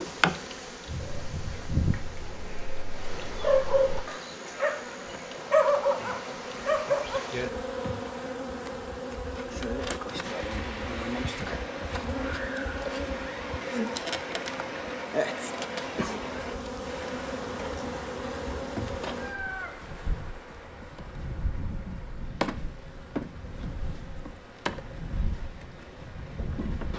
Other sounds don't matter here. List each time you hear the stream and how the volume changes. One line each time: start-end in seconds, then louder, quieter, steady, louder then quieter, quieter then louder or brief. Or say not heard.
10.2-26.9 quieter.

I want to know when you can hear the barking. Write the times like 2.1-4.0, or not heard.
1.1-4.8, 5.5-7.2.